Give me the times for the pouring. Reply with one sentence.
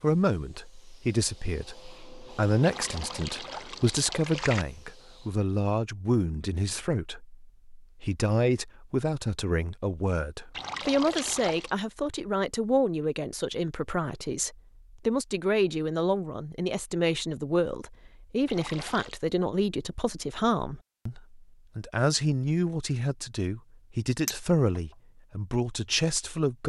The pouring can be heard from 2.6 to 4.7 s, from 10.5 to 11.7 s and from 18.4 to 19.1 s.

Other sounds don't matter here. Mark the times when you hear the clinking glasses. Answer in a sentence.
You can hear the clinking glasses from 24.2 to 24.9 s.